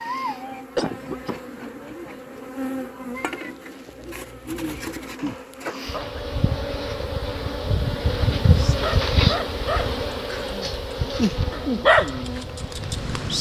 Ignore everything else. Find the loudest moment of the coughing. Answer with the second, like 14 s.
1 s.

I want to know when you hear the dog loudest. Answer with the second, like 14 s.
12 s.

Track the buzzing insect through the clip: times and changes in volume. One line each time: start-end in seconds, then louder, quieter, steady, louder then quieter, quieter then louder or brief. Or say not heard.
0.0-13.3 louder then quieter.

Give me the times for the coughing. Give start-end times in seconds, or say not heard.
0.8-1.4, 5.2-6.2, 10.2-10.8.